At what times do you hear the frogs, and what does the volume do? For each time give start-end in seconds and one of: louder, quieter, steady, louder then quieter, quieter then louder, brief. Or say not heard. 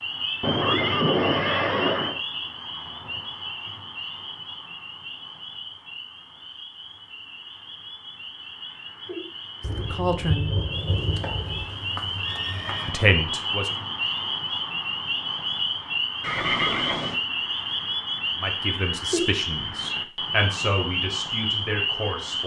0.0-22.4 quieter then louder.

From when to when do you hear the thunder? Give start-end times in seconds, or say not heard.
9.6-11.7.